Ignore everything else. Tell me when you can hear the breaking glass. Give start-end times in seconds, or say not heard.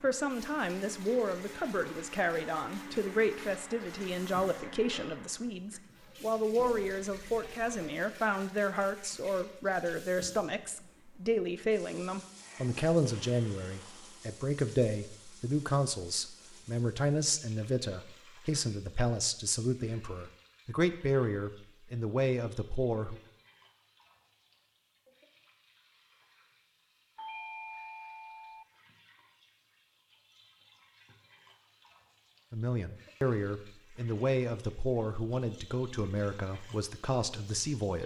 not heard.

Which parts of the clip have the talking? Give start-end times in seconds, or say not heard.
0.0-23.1, 32.5-38.0.